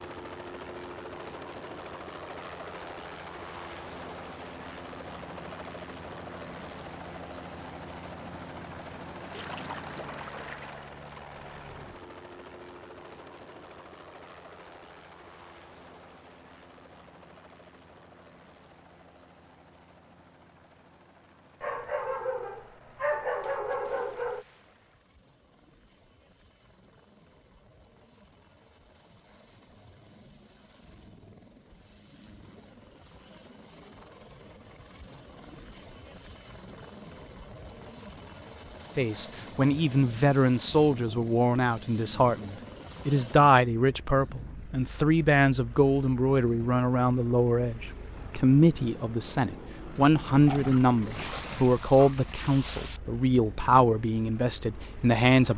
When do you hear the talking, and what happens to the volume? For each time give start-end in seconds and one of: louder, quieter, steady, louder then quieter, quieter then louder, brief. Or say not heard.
39.0-55.5 steady.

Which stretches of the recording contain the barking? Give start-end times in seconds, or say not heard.
21.6-24.4, 50.5-52.5.